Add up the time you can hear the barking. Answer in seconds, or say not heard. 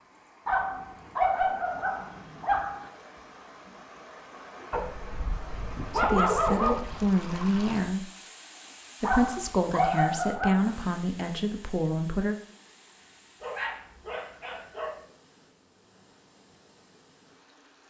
8 s.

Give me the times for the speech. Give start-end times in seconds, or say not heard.
6.0-8.1, 9.0-12.3.